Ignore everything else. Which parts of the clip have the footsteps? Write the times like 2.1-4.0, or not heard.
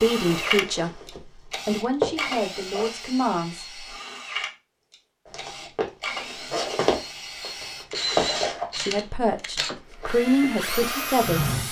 0.2-2.9, 5.2-11.6.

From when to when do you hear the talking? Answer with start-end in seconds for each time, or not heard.
0.0-1.0, 1.6-3.9, 8.8-11.6.